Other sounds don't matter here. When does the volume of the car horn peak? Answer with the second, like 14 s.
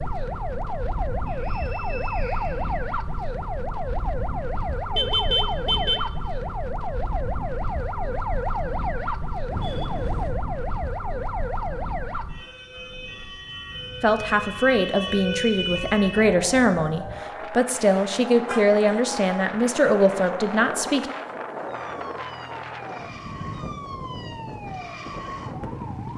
5 s.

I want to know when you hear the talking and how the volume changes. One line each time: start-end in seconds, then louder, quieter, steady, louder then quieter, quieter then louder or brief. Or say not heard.
14.0-21.1 steady.